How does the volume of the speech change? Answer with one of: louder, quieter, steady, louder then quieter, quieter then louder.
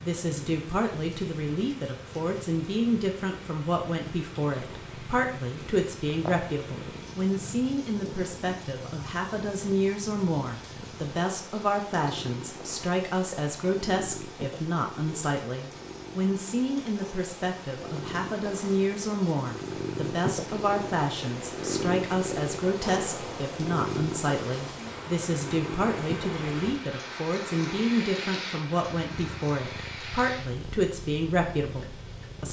steady.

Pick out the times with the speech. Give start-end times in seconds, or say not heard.
0.0-32.4.